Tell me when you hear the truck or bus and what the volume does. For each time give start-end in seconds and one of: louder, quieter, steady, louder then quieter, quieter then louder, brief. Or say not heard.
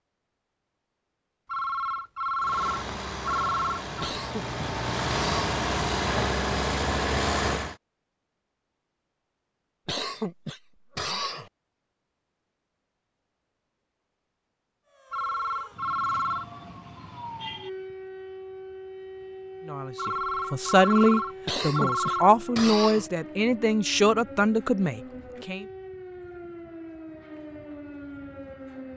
2.4-7.8 louder.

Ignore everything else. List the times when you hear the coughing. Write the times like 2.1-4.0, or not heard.
4.0-5.5, 9.8-11.5, 21.4-23.1.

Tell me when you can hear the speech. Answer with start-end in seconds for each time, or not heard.
19.6-25.6.